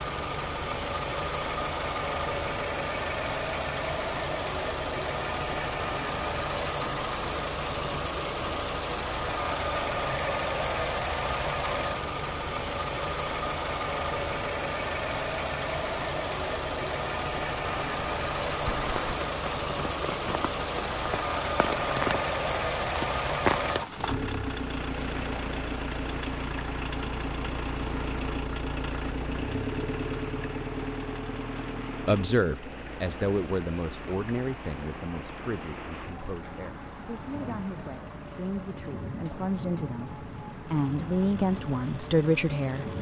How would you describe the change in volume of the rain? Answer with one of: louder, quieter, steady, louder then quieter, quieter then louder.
quieter.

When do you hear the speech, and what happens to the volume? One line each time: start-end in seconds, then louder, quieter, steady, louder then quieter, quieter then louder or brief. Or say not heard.
32.0-42.9 quieter then louder.